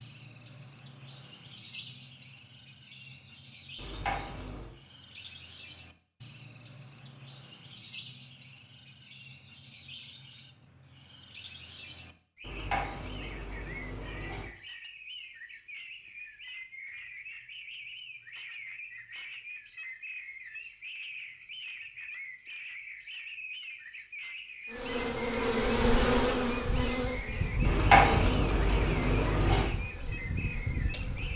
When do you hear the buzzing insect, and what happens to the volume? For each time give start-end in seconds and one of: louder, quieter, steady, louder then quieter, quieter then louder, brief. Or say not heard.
24.7-31.3 quieter.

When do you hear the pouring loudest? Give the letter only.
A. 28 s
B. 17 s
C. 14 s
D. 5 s
A.